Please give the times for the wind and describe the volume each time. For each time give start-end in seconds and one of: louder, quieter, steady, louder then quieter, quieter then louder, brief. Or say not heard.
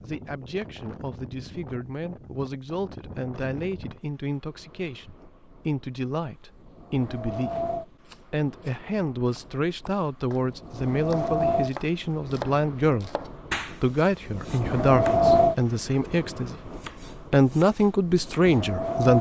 0.0-19.1 louder.